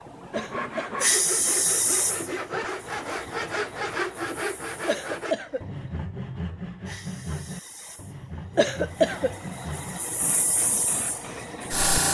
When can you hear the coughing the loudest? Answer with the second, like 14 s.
9 s.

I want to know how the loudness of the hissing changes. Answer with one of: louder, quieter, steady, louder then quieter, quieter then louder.
quieter then louder.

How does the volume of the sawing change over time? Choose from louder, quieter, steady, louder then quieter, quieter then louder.
quieter.